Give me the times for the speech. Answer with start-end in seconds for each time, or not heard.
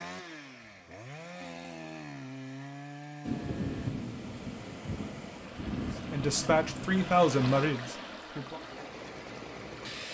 6.1-8.6.